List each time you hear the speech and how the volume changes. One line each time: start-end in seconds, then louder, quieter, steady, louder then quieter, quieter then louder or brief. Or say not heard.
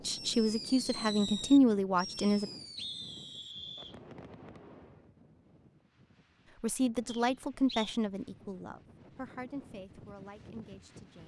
0.1-2.5 brief
6.6-11.2 quieter.